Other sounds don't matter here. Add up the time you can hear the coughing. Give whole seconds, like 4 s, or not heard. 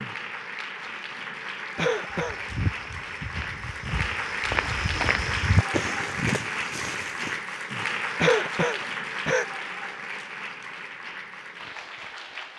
2 s.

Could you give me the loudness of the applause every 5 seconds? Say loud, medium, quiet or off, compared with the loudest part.
loud, loud, medium.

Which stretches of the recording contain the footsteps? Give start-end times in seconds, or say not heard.
2.1-7.4.